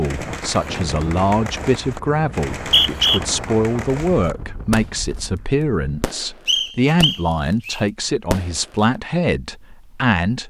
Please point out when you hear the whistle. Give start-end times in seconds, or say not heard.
2.5-3.2, 6.5-7.8.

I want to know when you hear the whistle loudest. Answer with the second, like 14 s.
3 s.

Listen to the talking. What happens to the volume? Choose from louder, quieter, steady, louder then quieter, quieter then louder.
steady.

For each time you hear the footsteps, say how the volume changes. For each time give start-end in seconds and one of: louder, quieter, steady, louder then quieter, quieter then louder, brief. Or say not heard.
not heard.